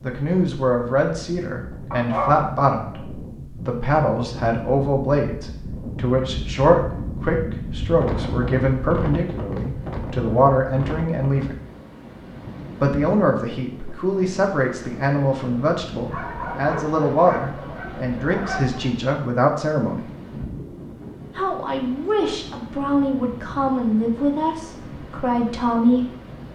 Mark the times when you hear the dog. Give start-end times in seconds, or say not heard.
1.9-3.3, 16.1-18.9.